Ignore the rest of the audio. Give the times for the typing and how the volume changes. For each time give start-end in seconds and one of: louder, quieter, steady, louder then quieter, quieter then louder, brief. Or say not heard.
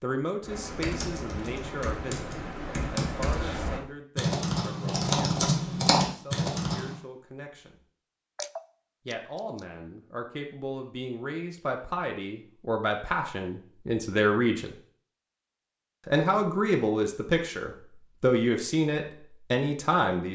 0.5-7.0 louder.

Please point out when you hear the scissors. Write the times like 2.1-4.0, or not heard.
8.3-9.7.